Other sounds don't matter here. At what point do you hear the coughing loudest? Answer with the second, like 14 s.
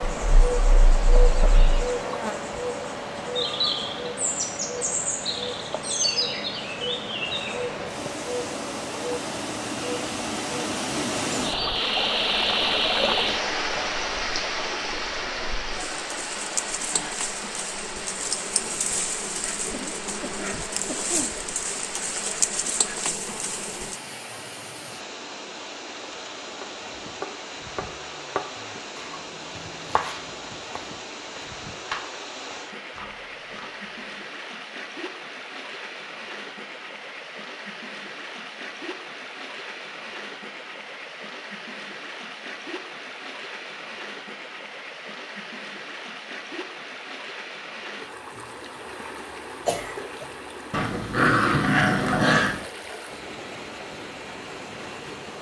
50 s.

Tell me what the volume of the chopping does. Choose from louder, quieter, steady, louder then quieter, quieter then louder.
quieter.